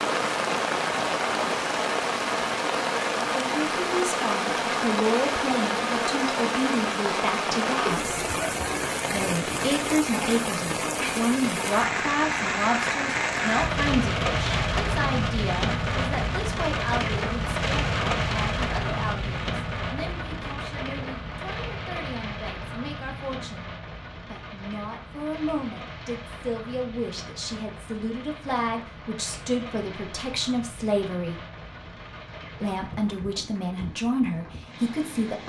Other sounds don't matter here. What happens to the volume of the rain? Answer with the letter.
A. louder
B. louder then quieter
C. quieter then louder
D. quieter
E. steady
D.